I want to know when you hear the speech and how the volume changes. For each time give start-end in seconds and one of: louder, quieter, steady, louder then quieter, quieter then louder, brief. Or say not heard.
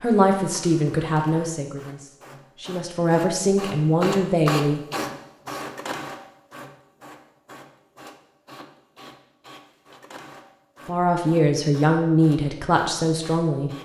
0.0-4.8 quieter then louder
10.8-13.7 brief.